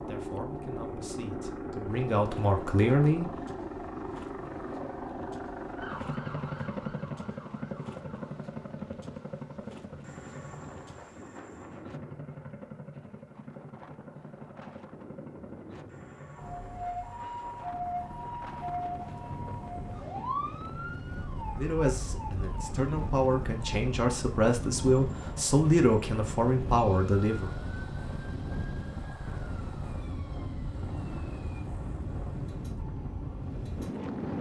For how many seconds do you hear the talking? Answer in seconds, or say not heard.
9 s.